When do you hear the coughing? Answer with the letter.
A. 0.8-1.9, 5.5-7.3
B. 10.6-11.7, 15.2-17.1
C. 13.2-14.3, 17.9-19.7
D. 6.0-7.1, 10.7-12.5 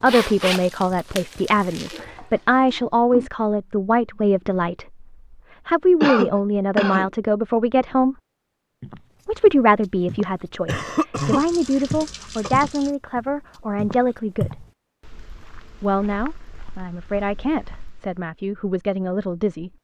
D.